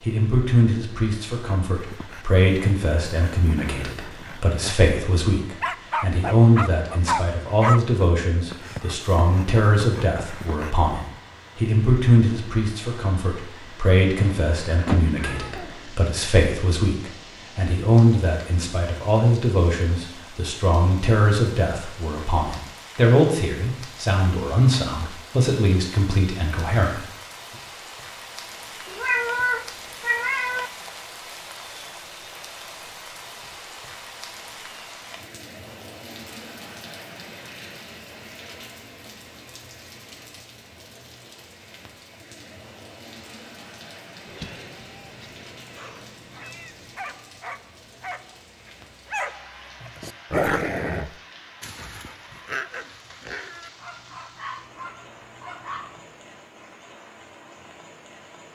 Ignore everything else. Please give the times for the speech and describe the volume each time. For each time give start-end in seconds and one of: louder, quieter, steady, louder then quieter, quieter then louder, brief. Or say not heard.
0.0-27.1 steady.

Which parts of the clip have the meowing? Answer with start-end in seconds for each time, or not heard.
14.2-15.7, 28.9-30.7, 44.2-47.0.